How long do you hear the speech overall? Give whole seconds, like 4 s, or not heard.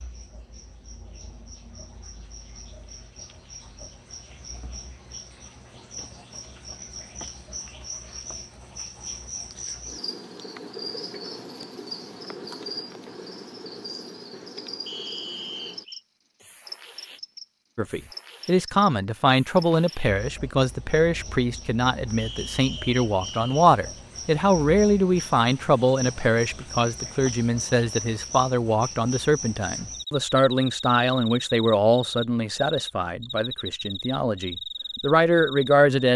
18 s.